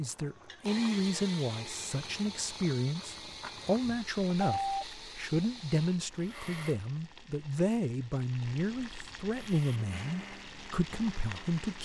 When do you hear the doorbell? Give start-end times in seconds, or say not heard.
3.8-4.8.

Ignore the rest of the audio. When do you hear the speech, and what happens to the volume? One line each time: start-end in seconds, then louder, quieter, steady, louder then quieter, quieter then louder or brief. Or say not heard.
0.0-11.8 steady.